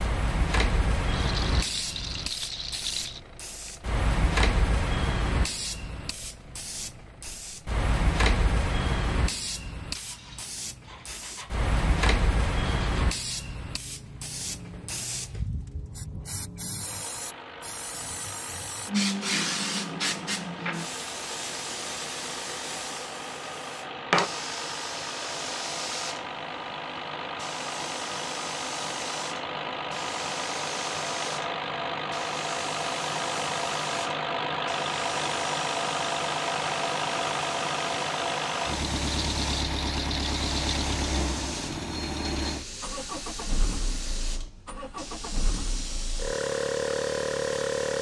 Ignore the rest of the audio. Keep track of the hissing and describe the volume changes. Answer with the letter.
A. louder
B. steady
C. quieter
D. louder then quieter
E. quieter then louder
C.